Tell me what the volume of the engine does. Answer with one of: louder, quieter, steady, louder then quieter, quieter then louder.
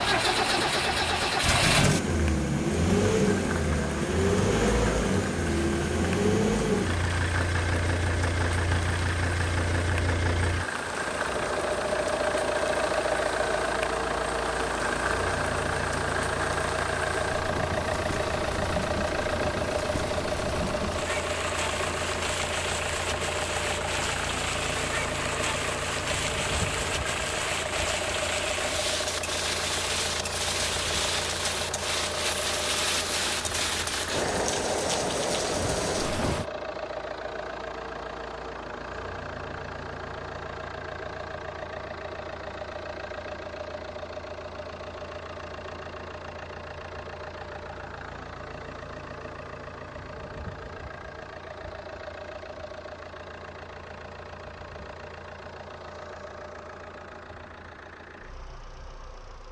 quieter.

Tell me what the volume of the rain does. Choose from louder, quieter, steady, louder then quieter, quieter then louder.
louder.